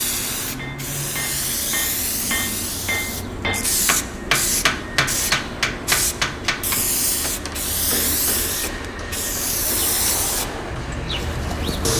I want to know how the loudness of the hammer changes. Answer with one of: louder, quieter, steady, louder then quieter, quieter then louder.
louder then quieter.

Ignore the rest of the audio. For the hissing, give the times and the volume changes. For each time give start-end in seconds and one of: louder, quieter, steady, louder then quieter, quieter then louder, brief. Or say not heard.
0.0-11.9 steady.